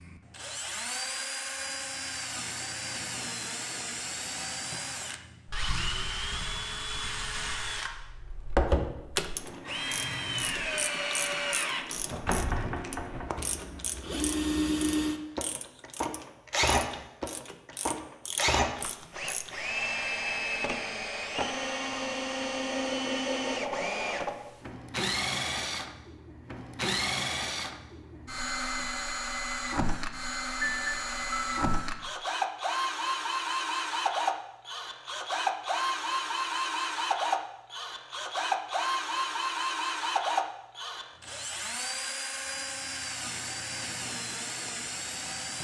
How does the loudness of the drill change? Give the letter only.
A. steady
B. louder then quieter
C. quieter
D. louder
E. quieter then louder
A.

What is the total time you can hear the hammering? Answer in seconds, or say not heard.
not heard.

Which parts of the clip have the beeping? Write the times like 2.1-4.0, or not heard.
30.6-31.7.